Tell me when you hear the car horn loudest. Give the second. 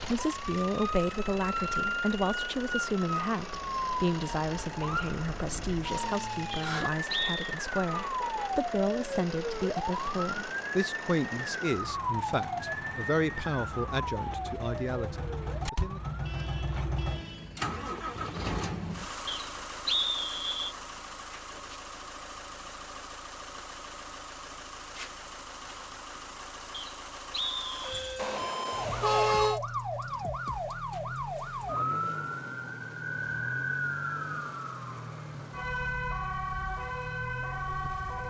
29 s.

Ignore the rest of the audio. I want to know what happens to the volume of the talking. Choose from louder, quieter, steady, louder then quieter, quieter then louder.
steady.